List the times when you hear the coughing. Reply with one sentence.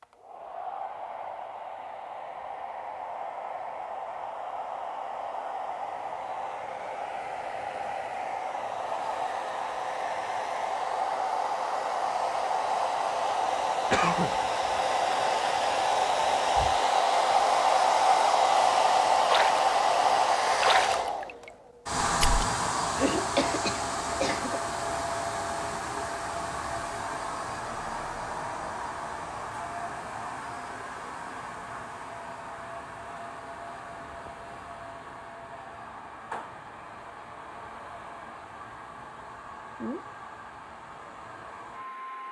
The coughing can be heard from 13.9 to 14.4 s and from 22.9 to 24.6 s.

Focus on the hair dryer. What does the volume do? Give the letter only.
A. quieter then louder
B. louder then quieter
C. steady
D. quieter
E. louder
B.